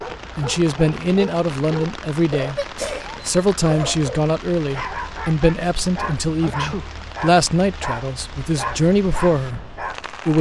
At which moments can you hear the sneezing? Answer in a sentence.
You can hear the sneezing from 2.5 to 3.2 s and from 6.4 to 6.9 s.